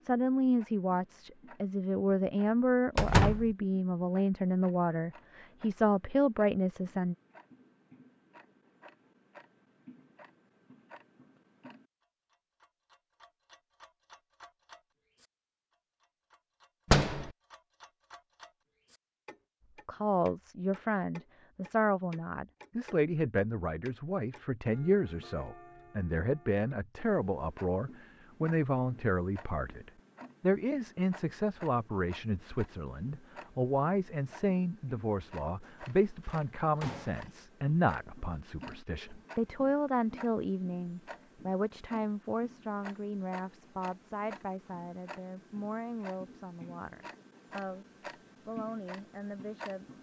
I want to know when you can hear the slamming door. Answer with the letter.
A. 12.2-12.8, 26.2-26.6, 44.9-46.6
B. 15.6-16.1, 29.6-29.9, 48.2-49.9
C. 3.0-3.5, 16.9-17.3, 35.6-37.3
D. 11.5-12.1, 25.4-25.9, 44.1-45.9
C.